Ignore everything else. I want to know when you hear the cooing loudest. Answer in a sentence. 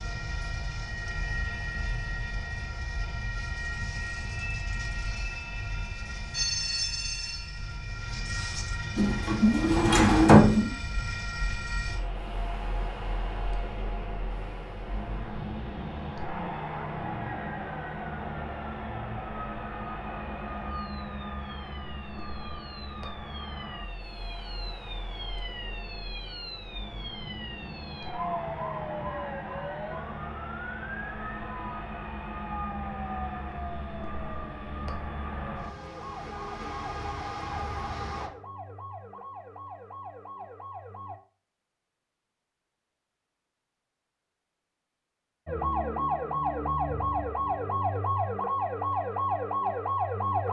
The volume of the cooing peaks at 10 seconds.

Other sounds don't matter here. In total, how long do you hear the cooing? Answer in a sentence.
The cooing can be heard for 2 seconds in total.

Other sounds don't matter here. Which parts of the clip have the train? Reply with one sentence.
The train can be heard from 0.0 to 38.3 s.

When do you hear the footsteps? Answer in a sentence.
You can't hear the footsteps here.